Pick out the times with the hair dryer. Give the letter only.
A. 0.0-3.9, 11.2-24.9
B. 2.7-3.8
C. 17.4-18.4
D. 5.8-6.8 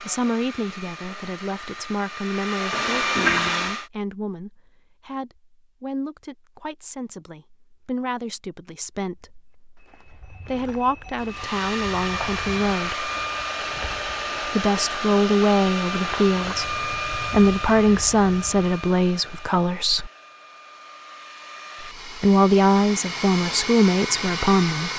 A.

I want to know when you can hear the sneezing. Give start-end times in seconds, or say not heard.
not heard.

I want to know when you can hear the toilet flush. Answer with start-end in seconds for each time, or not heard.
2.7-3.8.